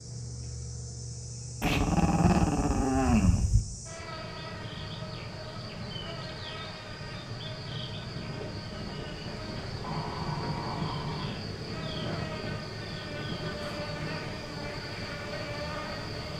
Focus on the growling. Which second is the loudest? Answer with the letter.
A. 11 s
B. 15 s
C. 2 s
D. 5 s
C.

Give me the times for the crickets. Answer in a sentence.
You can hear the crickets from 0.0 to 16.3 s.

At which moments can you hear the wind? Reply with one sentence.
You can hear the wind from 8.0 to 16.3 s.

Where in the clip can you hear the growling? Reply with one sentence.
You can hear the growling from 1.6 to 3.6 s and from 9.8 to 11.3 s.